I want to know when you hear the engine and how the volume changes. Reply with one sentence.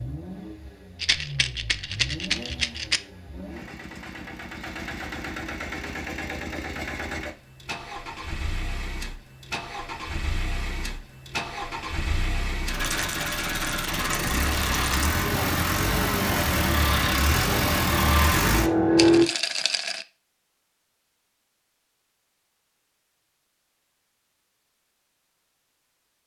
You can hear the engine from 0.0 to 19.2 s, getting louder.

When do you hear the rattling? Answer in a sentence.
The rattling can be heard from 0.9 to 3.0 s, from 12.8 to 15.1 s and from 18.9 to 20.1 s.